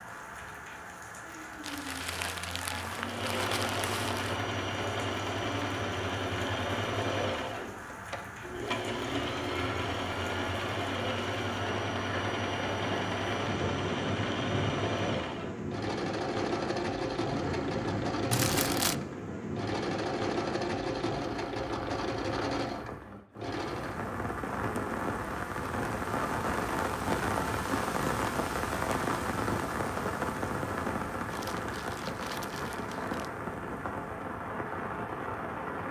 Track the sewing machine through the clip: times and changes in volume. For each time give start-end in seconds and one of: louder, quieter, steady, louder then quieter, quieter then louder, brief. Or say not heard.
2.8-24.1 steady.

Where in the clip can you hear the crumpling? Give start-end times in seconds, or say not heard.
1.6-4.4, 18.3-18.9, 31.2-33.3.